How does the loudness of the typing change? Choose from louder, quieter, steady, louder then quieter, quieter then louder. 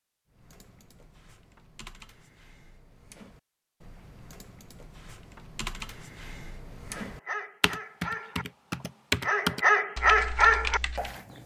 louder.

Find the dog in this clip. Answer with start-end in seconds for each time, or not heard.
6.9-8.4, 9.2-11.4.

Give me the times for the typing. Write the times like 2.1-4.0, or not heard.
0.3-11.2.